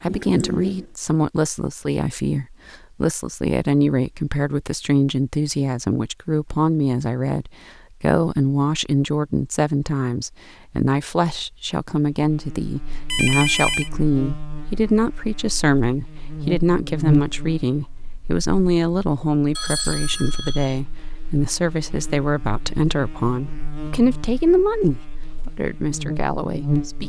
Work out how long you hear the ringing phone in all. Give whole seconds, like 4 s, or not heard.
3 s.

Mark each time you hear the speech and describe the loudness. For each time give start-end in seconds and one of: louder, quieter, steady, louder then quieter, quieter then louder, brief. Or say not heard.
0.0-27.0 steady.